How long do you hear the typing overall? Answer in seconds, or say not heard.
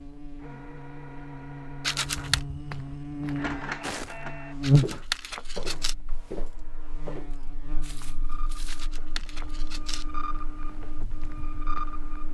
not heard.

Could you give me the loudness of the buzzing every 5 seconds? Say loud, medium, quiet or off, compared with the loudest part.
loud, quiet, quiet.